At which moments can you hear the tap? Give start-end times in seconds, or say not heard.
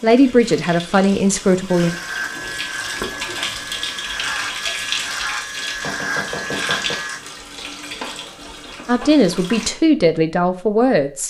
0.0-9.7.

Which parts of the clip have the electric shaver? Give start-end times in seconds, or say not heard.
1.6-7.2.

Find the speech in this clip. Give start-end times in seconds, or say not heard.
0.0-1.9, 8.8-11.2.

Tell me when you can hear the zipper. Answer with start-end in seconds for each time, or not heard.
not heard.